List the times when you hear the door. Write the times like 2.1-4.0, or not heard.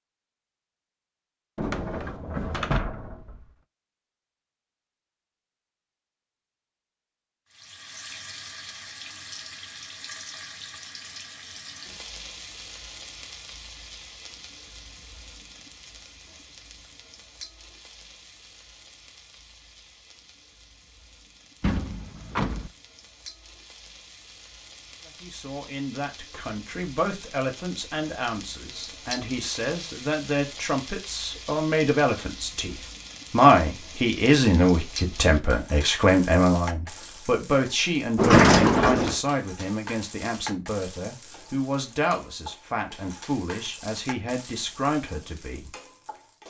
1.6-3.5, 21.6-22.7, 38.1-39.1.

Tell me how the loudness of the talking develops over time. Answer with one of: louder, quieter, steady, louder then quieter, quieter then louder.
louder then quieter.